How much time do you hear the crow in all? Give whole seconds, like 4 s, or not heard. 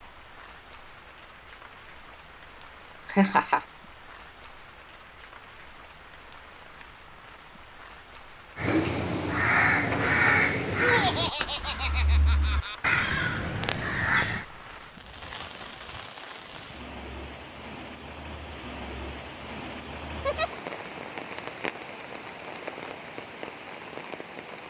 6 s.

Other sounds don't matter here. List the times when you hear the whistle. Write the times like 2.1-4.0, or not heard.
not heard.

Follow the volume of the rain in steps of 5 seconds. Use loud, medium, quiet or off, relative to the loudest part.
medium, medium, medium, loud, loud.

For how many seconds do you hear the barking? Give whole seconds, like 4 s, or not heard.
not heard.